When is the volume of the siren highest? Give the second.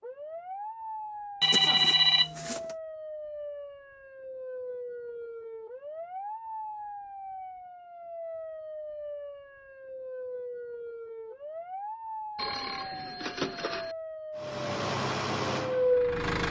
16 s.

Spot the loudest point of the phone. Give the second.
2 s.